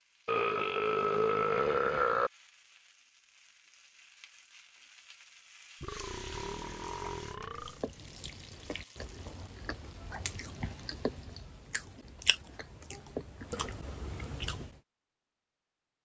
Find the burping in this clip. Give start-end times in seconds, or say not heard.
0.2-2.3, 5.8-7.8, 12.9-14.4.